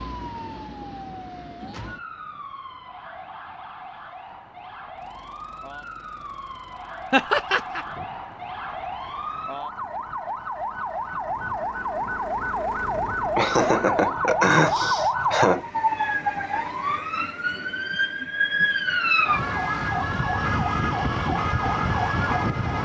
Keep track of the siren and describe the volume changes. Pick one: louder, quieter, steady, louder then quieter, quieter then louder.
louder.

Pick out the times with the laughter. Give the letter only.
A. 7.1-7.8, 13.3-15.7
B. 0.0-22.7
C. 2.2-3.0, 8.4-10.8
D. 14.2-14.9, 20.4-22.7
A.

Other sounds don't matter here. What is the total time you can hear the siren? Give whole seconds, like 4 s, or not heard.
23 s.